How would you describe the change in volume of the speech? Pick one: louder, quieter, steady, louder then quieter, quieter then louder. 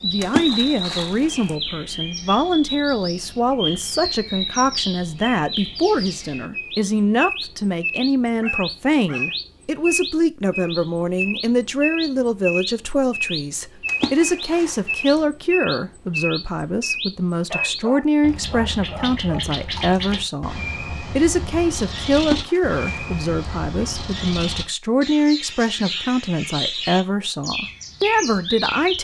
steady.